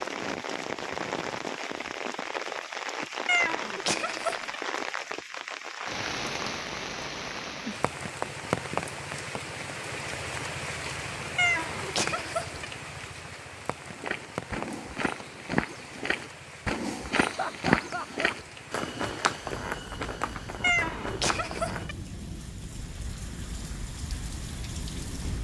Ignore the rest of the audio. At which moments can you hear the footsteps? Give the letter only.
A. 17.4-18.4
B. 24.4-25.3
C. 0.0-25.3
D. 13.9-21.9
D.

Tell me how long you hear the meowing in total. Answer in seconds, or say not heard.
4 s.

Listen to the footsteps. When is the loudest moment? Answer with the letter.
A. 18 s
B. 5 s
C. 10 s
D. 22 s
A.